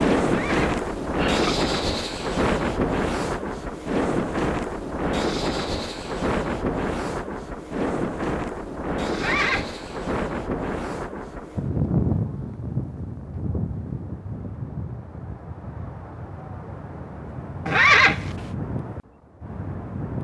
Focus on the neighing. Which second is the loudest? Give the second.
18 s.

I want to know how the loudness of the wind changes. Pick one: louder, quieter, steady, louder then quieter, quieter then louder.
quieter.